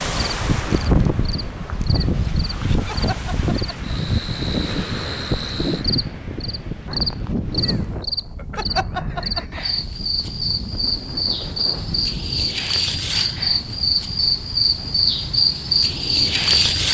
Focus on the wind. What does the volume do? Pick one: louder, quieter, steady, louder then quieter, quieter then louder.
quieter.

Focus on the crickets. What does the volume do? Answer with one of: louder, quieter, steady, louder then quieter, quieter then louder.
louder.